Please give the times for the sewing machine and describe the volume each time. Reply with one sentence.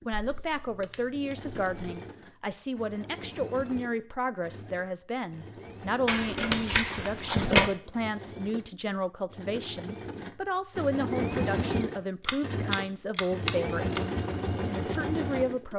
You can hear the sewing machine from 0.0 to 15.7 s, getting louder.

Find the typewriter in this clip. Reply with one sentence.
The typewriter can't be heard in this clip.